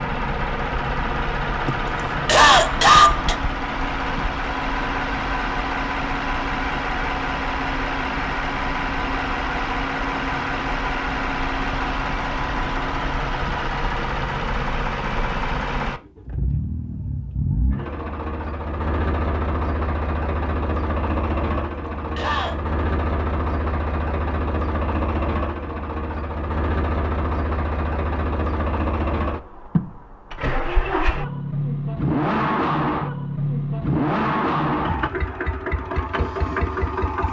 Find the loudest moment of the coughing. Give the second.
3 s.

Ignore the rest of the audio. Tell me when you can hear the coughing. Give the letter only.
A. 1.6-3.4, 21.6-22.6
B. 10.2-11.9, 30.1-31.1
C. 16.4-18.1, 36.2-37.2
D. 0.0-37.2
A.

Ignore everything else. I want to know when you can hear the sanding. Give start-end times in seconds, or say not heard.
not heard.